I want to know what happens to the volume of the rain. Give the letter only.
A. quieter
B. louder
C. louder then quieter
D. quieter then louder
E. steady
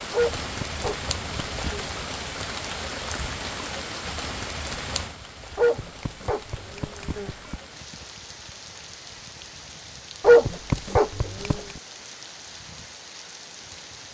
A.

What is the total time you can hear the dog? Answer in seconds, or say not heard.
5 s.